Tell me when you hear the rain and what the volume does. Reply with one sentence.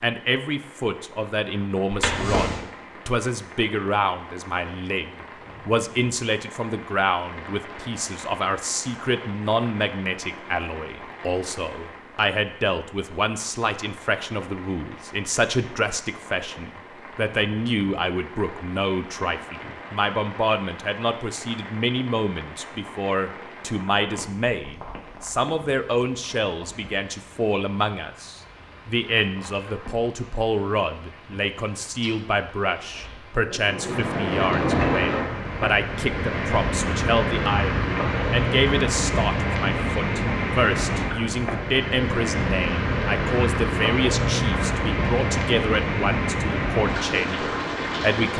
You can hear the rain from 0.0 to 48.3 s, getting louder.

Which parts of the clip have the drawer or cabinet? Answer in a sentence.
You can hear the drawer or cabinet from 1.9 to 2.6 s.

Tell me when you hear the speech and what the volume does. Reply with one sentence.
You can hear the speech from 0.0 to 48.3 s, at a steady volume.